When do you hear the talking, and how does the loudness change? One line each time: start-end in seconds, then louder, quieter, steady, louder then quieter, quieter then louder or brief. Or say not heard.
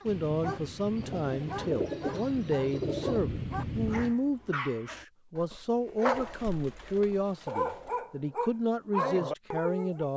0.1-10.1 steady.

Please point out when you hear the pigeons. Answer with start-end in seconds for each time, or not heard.
1.2-3.2, 6.1-8.0.